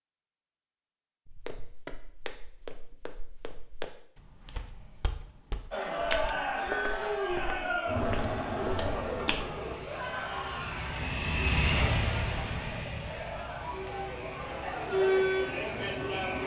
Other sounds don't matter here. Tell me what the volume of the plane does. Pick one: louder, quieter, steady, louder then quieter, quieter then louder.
louder then quieter.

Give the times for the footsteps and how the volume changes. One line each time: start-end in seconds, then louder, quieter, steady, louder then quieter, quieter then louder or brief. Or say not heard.
1.2-9.5 louder.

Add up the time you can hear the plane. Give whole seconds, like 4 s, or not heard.
8 s.